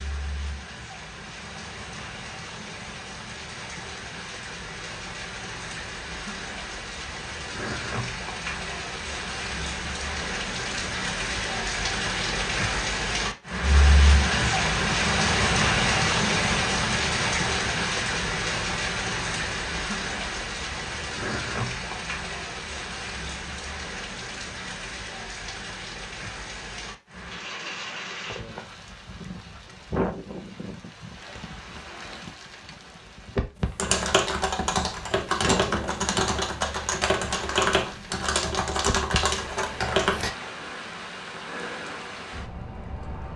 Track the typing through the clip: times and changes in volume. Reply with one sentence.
The typing can be heard from 33.6 to 40.3 s, at a steady volume.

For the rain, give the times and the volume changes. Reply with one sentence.
The rain can be heard from 0.0 to 43.3 s, getting louder then quieter.